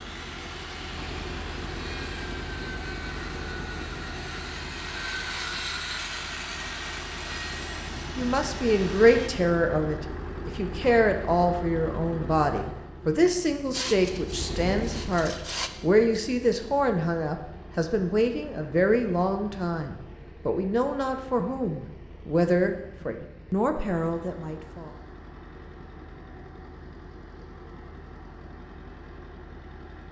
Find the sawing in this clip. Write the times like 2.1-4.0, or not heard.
0.0-9.3, 13.7-15.7.